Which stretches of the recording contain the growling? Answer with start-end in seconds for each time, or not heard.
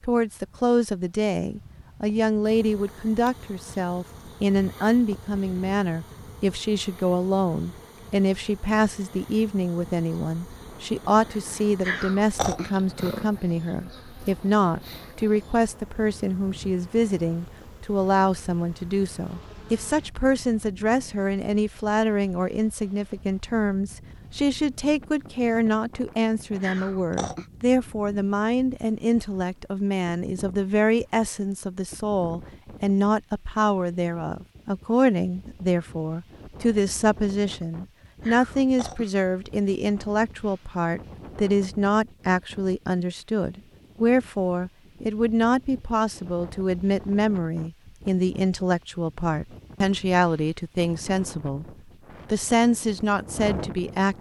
11.8-13.3, 26.6-27.4, 38.2-39.1.